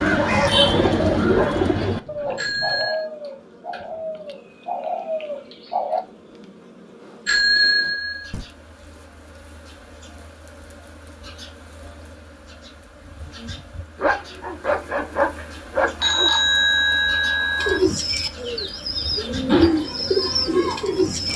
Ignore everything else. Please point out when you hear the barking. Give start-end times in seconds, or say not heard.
0.1-2.9, 13.9-16.3.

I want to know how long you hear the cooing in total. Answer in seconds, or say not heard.
10 s.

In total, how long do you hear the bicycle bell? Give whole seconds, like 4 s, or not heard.
4 s.